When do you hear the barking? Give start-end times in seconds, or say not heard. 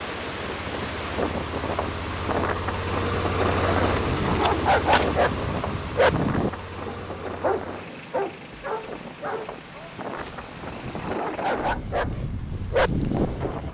3.9-13.6.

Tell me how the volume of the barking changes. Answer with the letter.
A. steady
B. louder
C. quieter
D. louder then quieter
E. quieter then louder
E.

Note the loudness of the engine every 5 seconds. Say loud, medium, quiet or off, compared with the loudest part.
loud, medium, quiet.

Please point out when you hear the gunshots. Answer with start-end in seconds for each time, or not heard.
4.0-5.1.